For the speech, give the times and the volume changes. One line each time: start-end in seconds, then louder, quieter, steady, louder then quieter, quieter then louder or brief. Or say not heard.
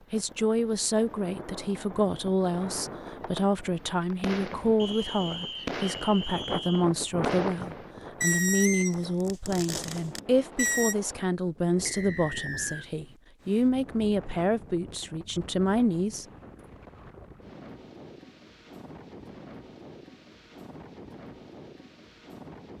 0.1-16.2 steady.